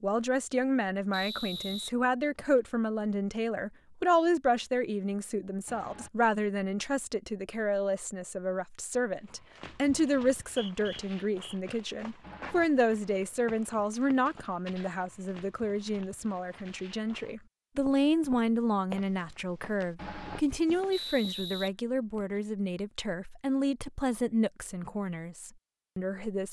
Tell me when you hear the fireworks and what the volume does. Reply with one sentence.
The fireworks can't be heard in this clip.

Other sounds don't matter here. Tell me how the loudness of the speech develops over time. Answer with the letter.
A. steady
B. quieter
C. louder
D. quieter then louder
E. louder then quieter
A.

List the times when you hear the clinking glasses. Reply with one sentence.
The clinking glasses can't be heard in this clip.